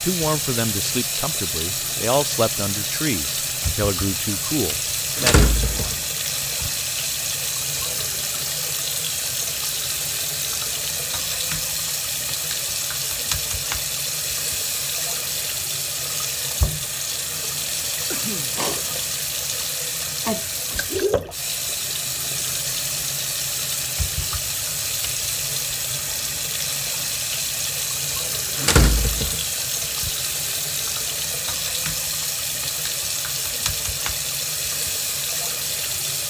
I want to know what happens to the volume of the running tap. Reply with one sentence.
The volume of the running tap stays about the same.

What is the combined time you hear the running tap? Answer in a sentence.
The running tap can be heard for 36 seconds in total.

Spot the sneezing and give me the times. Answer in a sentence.
The sneezing can be heard from 18.1 to 18.6 s.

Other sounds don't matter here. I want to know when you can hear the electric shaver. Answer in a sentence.
The electric shaver can't be heard in this clip.